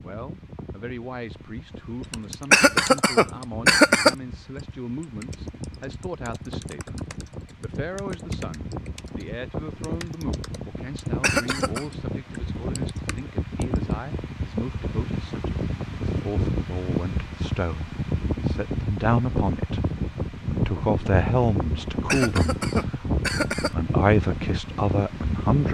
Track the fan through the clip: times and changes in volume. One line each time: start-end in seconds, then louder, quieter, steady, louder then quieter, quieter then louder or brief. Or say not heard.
0.0-25.6 louder.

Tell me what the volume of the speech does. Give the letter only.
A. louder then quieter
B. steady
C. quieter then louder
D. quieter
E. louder
E.